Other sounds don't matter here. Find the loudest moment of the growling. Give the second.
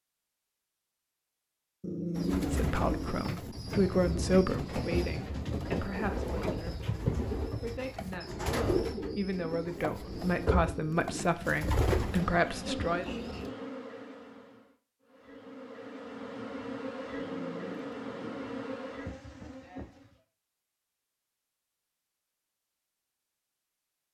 2 s.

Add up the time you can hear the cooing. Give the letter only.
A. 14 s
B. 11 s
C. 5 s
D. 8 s
B.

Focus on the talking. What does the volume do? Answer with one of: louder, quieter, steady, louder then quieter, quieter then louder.
quieter then louder.